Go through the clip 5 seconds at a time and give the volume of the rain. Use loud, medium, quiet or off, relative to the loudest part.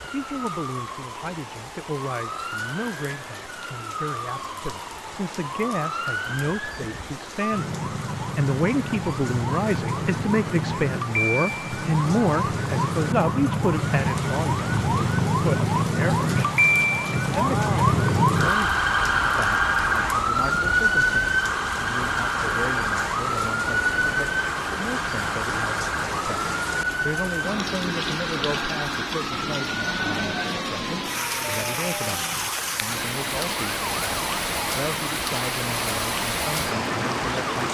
quiet, medium, medium, medium, medium, loud, loud, loud.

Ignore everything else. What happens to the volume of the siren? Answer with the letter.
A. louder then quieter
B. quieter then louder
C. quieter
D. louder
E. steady
A.